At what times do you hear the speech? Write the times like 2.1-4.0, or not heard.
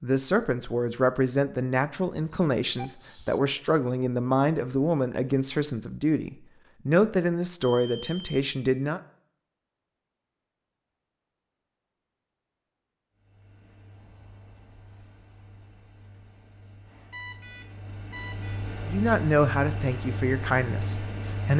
0.0-9.0, 18.9-21.5.